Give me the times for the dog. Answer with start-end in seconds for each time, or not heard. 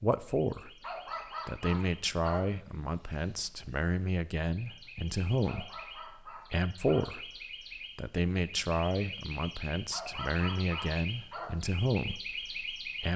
0.8-2.5, 5.5-7.1, 9.9-11.6.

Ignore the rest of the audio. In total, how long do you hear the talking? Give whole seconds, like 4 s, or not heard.
12 s.